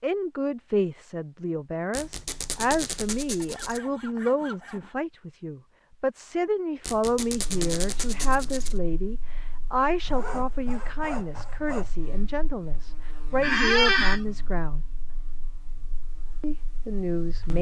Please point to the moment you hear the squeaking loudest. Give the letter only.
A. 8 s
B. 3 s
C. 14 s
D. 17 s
C.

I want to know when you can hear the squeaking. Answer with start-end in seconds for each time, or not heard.
1.9-3.8, 6.8-8.8, 13.4-14.2.